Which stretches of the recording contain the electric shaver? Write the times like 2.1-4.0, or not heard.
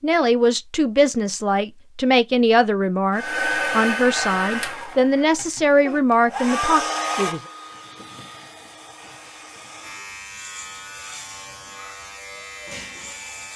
8.9-13.5.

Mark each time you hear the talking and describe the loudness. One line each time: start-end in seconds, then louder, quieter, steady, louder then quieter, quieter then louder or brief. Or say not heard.
0.0-7.4 steady.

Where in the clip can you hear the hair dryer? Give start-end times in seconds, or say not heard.
3.1-10.1.